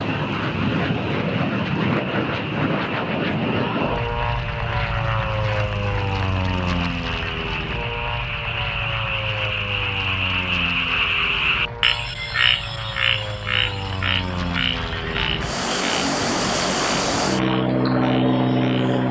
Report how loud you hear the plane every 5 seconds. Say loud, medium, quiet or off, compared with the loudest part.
loud, medium, medium, loud.